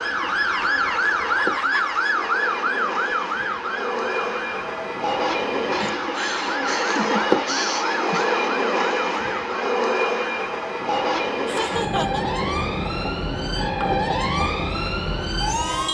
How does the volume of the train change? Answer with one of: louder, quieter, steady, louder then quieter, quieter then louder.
louder then quieter.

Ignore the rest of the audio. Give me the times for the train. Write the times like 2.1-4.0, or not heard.
0.0-15.8.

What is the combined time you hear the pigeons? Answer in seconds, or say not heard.
not heard.